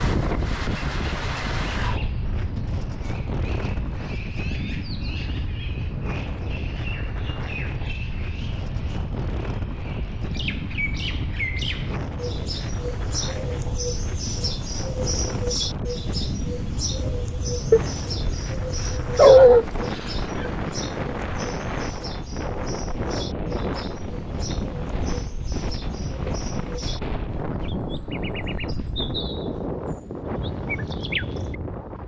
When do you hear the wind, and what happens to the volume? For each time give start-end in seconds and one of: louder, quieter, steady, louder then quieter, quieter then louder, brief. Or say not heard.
0.0-32.0 steady.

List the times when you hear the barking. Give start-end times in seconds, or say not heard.
17.7-20.2.